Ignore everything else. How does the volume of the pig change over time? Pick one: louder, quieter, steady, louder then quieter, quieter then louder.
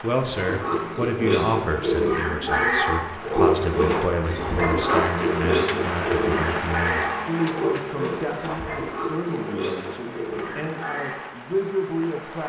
quieter.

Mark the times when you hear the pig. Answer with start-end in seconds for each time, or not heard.
0.2-11.2.